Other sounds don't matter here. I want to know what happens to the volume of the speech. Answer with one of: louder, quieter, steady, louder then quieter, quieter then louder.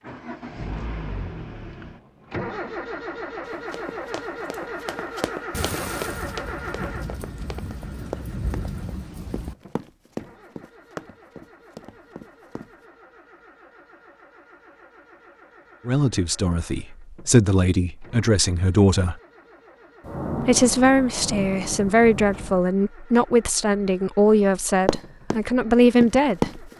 steady.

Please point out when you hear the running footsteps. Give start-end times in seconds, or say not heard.
3.4-12.7, 24.9-25.4, 26.0-26.7.